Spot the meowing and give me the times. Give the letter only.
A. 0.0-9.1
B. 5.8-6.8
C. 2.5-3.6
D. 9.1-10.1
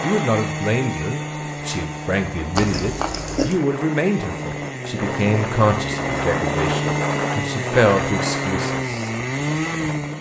C.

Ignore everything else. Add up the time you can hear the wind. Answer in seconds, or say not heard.
10 s.